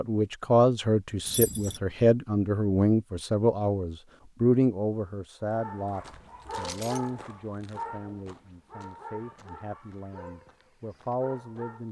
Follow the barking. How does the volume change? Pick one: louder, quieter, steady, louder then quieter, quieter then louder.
quieter.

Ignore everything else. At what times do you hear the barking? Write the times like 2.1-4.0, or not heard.
5.4-11.8.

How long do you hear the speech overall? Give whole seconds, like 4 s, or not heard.
12 s.